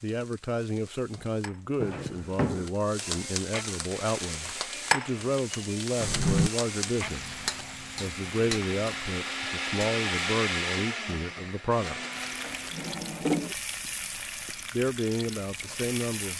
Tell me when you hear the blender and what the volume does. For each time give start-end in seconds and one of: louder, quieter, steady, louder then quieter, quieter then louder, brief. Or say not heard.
3.9-12.9 louder then quieter.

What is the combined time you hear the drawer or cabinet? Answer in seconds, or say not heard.
3 s.